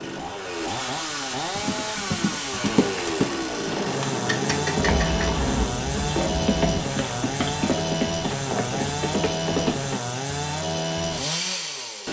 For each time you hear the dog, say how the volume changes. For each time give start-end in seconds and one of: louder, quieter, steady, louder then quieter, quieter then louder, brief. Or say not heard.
not heard.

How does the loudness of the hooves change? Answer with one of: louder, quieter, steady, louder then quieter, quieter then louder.
steady.